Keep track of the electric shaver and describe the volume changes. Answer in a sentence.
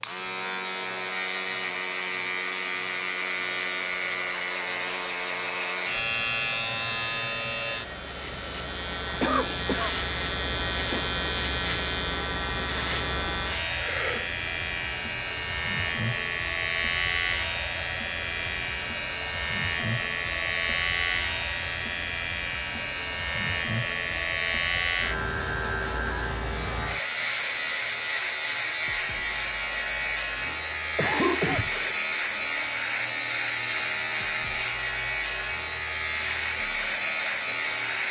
The loudness of the electric shaver stays about the same.